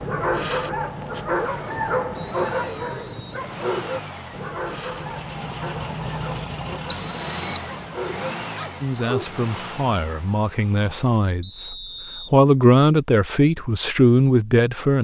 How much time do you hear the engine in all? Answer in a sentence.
The engine can be heard for 11 seconds in total.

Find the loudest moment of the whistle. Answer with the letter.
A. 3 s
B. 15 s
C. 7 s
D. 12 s
C.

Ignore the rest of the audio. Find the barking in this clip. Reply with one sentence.
You can hear the barking from 0.0 to 9.3 s.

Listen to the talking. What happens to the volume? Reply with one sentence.
The volume of the talking goes up.